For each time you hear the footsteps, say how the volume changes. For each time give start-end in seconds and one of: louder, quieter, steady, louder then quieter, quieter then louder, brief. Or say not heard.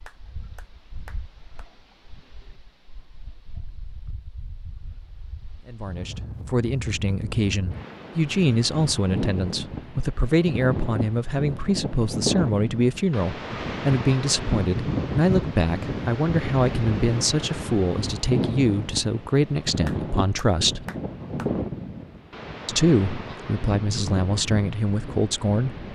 not heard.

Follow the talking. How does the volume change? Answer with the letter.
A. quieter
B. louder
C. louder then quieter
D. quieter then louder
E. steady
E.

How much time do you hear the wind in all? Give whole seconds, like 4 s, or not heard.
26 s.